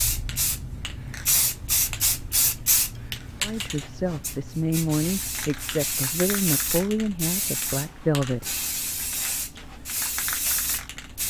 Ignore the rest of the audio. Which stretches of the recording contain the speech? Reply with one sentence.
The speech can be heard from 3.4 to 8.4 s.